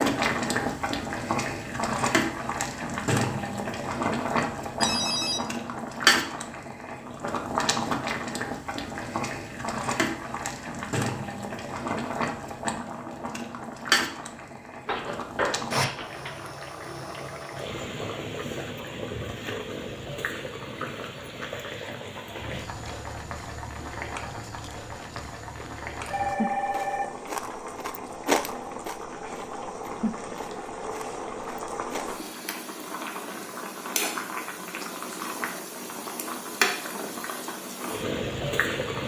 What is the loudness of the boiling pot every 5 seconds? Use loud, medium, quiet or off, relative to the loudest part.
loud, loud, loud, medium, medium, medium, medium, loud.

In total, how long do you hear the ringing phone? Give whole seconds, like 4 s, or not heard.
3 s.